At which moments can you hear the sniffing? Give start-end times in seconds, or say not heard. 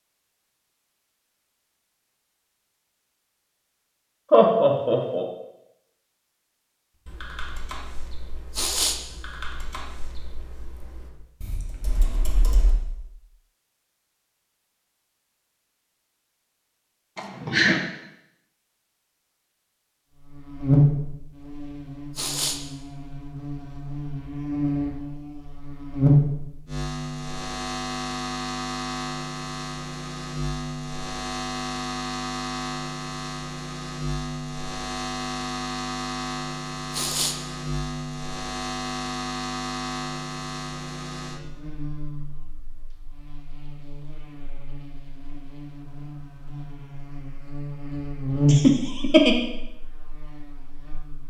8.6-9.0, 22.1-22.6, 36.9-37.4.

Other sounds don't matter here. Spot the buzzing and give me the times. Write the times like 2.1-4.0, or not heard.
20.1-51.2.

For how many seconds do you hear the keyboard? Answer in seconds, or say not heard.
6 s.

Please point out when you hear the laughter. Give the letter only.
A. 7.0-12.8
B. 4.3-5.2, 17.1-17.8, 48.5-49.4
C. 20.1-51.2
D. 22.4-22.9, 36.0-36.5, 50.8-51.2
B.